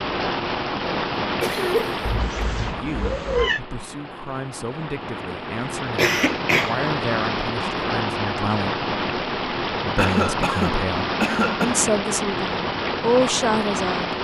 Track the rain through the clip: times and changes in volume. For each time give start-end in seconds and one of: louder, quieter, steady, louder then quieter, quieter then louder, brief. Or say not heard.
0.0-14.1 quieter then louder.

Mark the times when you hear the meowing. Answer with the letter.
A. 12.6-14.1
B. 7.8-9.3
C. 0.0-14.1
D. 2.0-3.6
D.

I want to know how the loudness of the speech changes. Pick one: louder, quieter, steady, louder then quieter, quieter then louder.
louder.